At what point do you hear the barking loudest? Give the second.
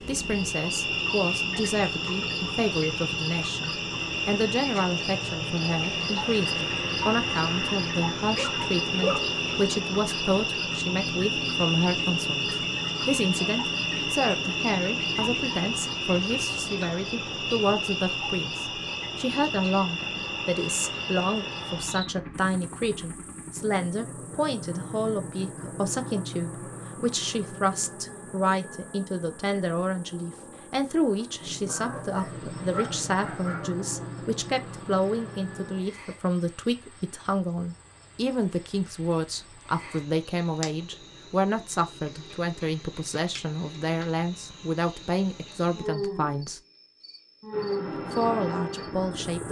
9 s.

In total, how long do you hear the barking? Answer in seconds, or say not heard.
3 s.